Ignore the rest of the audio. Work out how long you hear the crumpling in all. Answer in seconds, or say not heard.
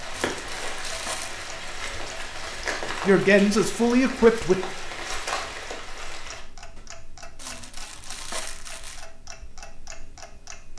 3 s.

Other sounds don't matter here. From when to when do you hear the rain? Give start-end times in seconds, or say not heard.
0.0-6.4.